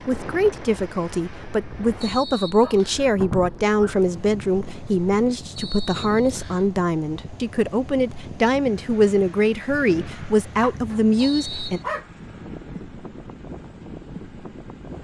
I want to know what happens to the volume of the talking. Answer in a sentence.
The loudness of the talking stays about the same.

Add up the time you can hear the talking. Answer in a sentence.
You can hear the talking for 12 seconds altogether.